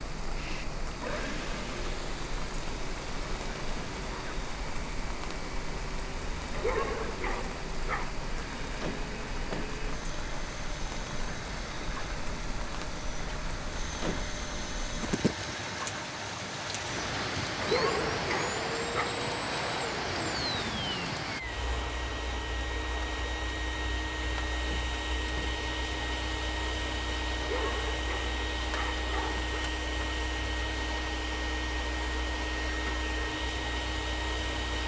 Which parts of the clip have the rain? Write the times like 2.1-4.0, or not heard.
0.0-21.4.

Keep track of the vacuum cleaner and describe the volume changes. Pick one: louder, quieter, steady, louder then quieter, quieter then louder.
louder.